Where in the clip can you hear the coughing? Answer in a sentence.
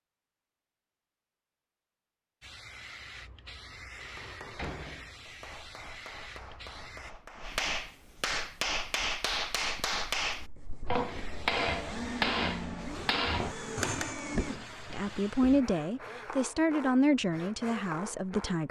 You can't hear the coughing here.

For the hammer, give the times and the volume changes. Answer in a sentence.
You can hear the hammer from 4.0 to 14.2 s, getting louder.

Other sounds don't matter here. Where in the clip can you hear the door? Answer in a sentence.
You can hear the door from 3.8 to 5.2 s.